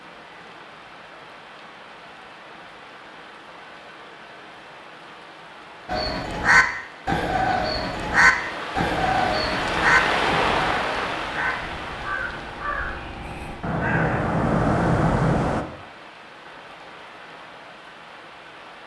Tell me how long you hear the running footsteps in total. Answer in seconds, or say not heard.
not heard.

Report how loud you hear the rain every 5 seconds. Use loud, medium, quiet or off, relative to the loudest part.
quiet, loud, loud, quiet.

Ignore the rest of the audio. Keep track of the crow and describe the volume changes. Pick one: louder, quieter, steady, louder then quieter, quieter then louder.
quieter then louder.